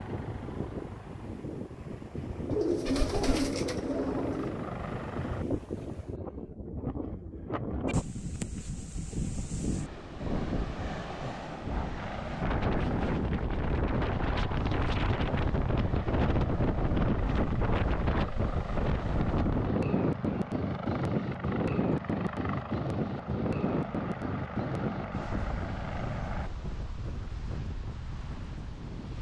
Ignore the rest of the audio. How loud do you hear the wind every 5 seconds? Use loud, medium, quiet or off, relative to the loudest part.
medium, medium, loud, loud, loud, medium.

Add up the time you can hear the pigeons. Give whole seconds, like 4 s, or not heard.
2 s.